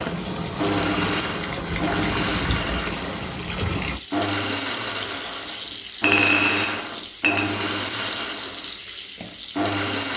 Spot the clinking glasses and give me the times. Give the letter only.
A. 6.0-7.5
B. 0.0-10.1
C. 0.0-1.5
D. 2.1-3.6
A.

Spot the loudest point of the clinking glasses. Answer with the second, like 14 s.
6 s.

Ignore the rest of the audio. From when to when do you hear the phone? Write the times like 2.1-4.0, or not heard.
not heard.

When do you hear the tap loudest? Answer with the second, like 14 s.
2 s.